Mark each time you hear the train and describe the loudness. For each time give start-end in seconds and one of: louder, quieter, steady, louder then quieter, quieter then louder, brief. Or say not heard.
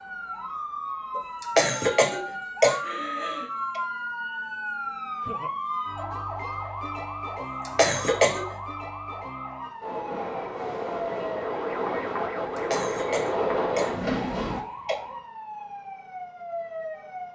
9.8-14.7 louder.